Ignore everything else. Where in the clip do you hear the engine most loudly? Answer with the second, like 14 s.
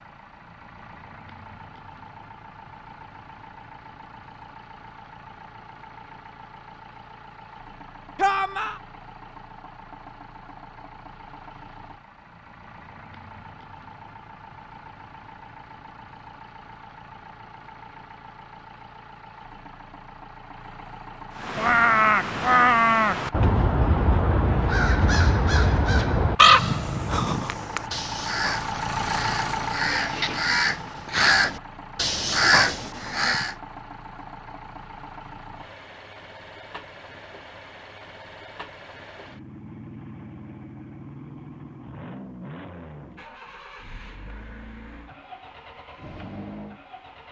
29 s.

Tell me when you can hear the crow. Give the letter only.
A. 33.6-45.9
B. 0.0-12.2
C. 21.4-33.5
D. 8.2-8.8
C.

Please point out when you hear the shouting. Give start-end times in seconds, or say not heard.
8.2-8.8.